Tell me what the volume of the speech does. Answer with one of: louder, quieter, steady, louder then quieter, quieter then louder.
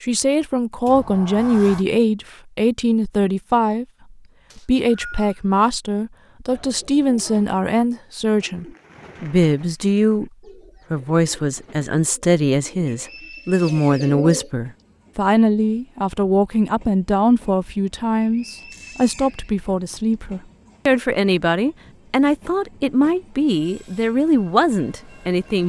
steady.